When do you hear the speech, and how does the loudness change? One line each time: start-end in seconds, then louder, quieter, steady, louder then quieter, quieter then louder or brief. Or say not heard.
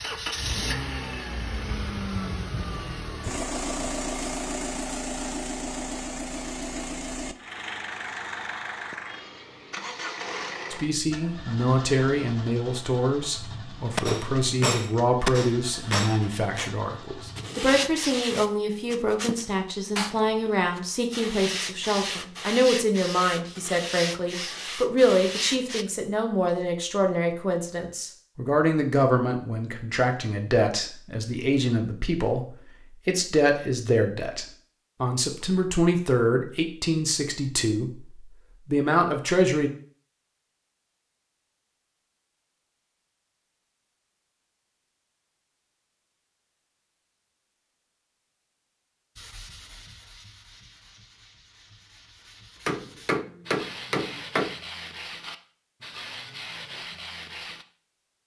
10.7-39.7 steady.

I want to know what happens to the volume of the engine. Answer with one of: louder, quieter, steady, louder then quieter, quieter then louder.
quieter.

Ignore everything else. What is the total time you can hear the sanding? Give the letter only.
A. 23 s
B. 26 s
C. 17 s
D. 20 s
C.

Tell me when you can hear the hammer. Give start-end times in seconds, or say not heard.
13.9-16.8, 52.6-54.5.